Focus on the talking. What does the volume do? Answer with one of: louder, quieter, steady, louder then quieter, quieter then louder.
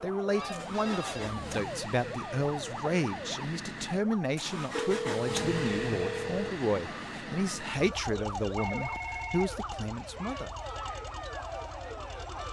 steady.